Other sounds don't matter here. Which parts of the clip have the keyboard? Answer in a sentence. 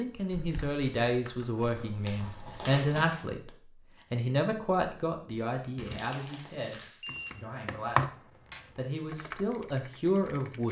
You can hear the keyboard from 0.2 to 1.7 s and from 7.0 to 10.6 s.